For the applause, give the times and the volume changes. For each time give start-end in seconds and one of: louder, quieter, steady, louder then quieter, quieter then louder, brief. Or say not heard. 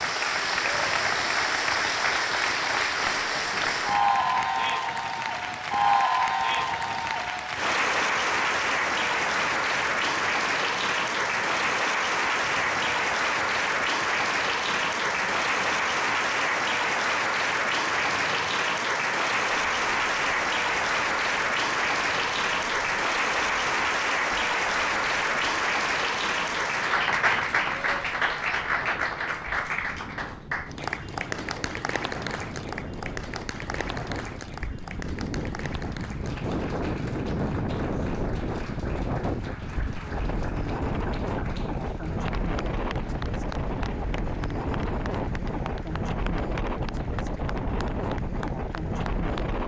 0.0-49.6 quieter.